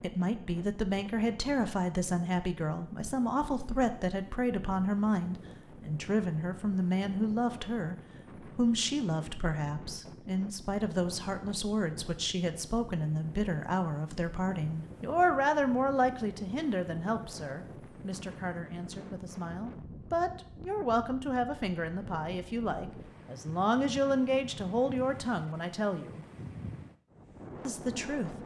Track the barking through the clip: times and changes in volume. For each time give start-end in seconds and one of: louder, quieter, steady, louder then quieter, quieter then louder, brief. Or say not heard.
not heard.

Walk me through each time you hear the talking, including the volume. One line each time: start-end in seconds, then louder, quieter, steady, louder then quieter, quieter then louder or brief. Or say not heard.
0.0-26.2 steady
27.6-28.4 brief.